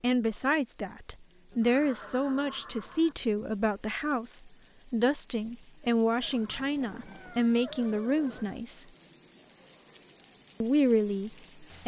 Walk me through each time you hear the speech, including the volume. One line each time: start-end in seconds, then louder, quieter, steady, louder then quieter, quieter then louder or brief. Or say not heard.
0.0-8.8 steady
10.6-11.8 brief.